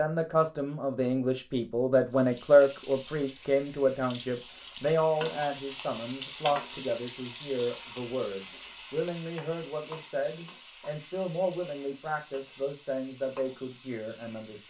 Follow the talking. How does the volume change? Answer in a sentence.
The loudness of the talking goes down.